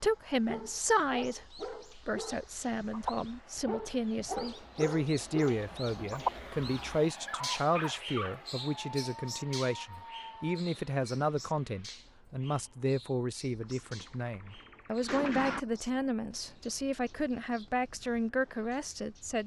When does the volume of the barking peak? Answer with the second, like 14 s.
6 s.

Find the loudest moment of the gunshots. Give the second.
15 s.